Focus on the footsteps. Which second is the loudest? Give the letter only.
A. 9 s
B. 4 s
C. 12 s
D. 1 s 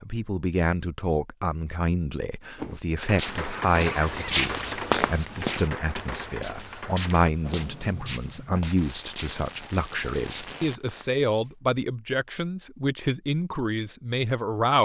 B.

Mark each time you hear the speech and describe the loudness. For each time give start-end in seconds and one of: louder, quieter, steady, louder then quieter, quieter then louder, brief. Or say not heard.
0.0-14.8 steady.